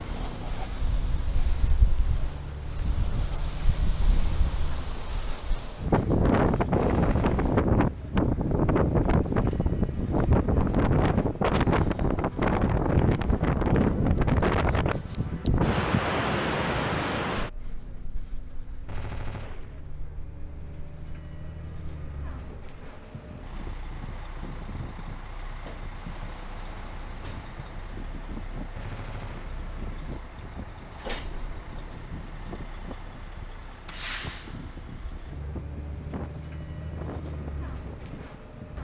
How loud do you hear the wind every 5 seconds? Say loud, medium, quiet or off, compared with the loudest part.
quiet, loud, loud, loud, quiet, quiet, quiet, quiet.